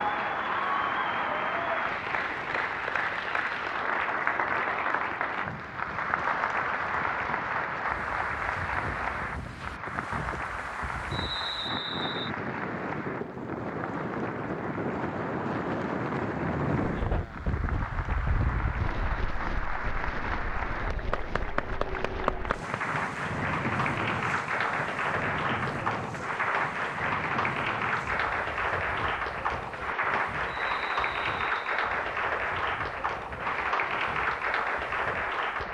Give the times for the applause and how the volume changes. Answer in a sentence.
The applause can be heard from 0.0 to 35.6 s, getting quieter then louder.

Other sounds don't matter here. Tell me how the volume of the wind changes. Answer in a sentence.
The volume of the wind goes up, then down.